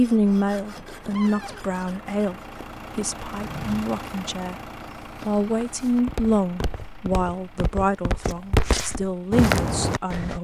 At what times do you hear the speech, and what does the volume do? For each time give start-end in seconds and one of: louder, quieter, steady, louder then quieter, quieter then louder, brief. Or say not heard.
0.0-2.4 brief
3.0-4.5 brief
5.2-10.3 quieter then louder.